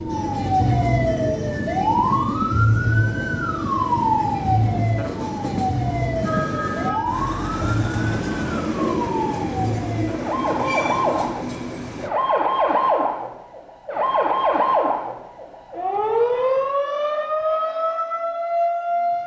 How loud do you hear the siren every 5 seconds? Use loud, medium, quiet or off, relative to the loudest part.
loud, medium, loud, loud.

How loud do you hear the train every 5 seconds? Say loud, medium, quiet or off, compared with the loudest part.
medium, loud, loud, off.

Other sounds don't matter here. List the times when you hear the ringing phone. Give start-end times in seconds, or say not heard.
6.2-7.0.